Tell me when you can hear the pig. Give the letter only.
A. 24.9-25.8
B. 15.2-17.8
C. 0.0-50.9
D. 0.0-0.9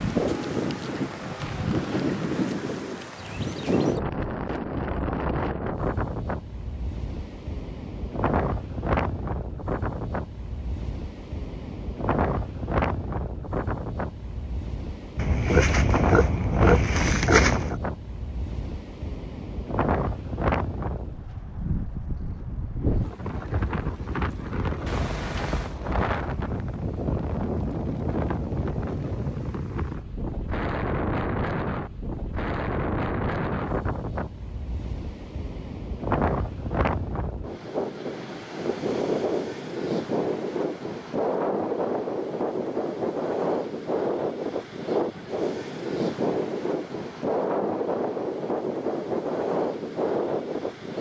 B.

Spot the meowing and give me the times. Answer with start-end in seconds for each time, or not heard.
24.9-25.8.